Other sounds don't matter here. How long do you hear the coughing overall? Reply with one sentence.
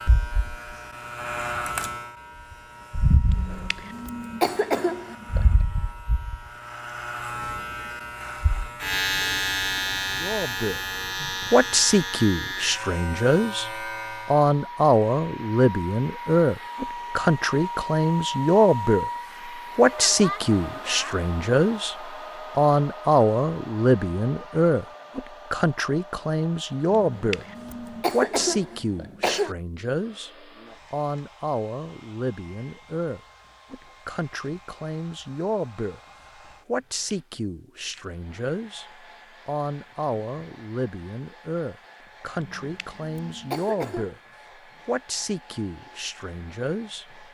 You can hear the coughing for 7 seconds altogether.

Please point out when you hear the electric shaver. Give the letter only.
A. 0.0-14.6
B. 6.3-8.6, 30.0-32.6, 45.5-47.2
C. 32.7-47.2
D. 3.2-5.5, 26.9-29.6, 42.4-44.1
A.